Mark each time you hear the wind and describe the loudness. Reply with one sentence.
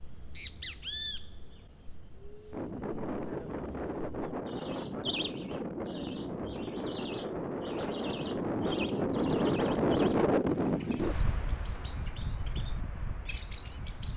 The wind can be heard from 2.5 to 14.1 s, getting louder then quieter.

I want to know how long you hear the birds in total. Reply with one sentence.
You can hear the birds for 14 seconds altogether.